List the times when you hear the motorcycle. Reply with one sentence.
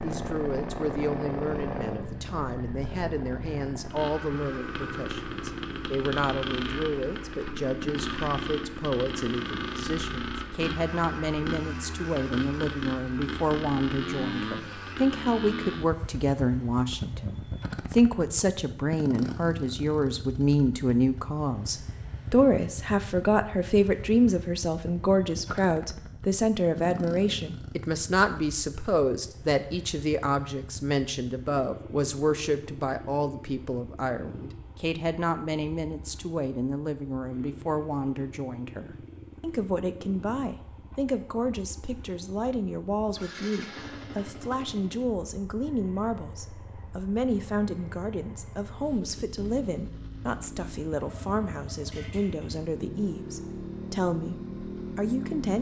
The motorcycle can be heard from 0.0 to 55.5 s.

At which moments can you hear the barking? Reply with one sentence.
You can't hear the barking here.